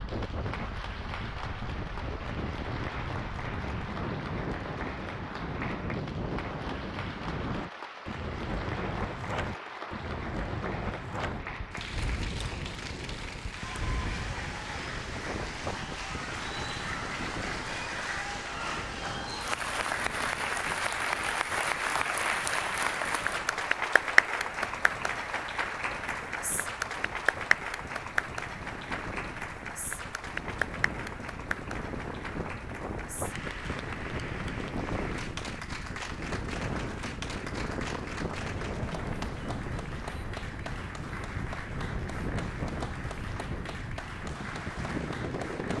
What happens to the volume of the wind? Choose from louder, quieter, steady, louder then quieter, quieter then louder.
quieter then louder.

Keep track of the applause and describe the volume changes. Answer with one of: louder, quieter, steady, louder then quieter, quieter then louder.
louder then quieter.